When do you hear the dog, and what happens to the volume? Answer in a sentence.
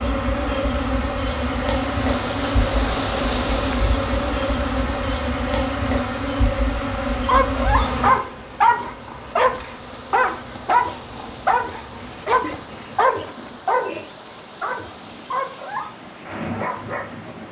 The dog can be heard from 7.1 to 17.4 s, getting quieter.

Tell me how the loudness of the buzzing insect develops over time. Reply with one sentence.
The loudness of the buzzing insect goes down.